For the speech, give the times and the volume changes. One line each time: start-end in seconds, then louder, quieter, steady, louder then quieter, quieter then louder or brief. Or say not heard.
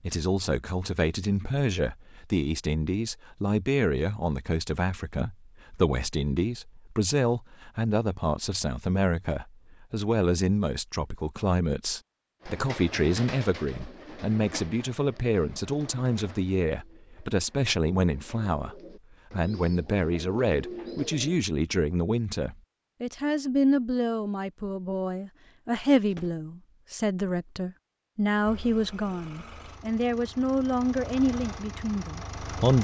0.0-32.7 steady.